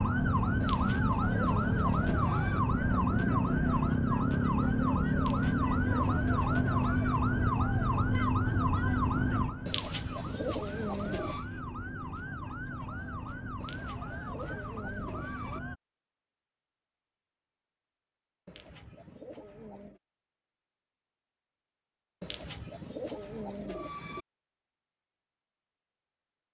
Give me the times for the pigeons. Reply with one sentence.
You can hear the pigeons from 0.6 to 2.6 s, from 5.2 to 7.2 s, from 9.7 to 11.4 s, from 13.6 to 15.6 s, from 18.4 to 20.0 s and from 22.2 to 24.2 s.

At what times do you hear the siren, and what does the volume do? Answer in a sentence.
The siren can be heard from 0.0 to 15.8 s, getting quieter.